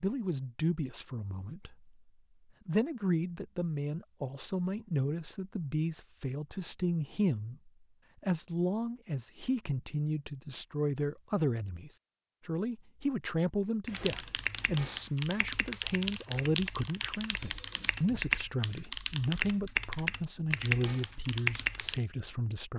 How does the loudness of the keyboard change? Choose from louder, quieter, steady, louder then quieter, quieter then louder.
louder.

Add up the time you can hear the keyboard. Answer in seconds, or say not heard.
8 s.